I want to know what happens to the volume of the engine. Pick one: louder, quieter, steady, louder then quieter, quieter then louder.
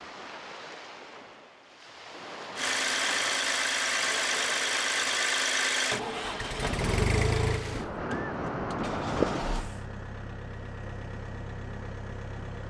quieter.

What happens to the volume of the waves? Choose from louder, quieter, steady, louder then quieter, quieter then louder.
louder.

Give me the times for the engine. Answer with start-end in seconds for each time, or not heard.
2.5-12.6.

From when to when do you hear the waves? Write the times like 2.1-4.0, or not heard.
0.0-9.8.